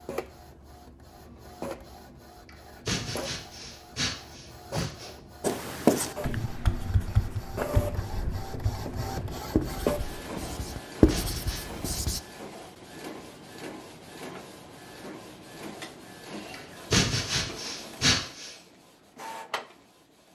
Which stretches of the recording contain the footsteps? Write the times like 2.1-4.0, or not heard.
not heard.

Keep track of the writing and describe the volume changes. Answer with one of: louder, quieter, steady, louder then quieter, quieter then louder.
quieter then louder.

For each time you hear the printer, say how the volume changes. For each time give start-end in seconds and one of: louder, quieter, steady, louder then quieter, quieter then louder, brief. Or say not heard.
0.0-20.3 louder then quieter.